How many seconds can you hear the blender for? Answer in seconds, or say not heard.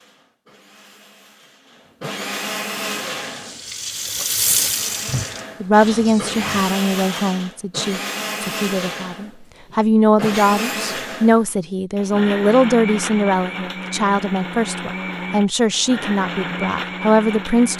18 s.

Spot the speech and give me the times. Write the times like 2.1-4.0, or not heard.
5.6-17.7.